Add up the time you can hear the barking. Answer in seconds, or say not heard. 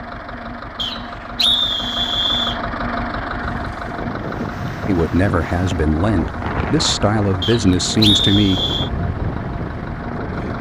not heard.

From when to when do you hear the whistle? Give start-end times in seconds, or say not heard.
0.8-2.6, 7.4-8.9.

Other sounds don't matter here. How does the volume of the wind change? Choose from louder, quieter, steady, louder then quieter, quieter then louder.
steady.